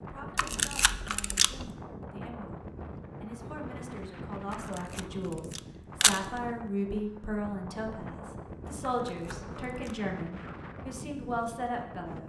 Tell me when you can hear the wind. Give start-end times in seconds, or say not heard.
0.0-12.2.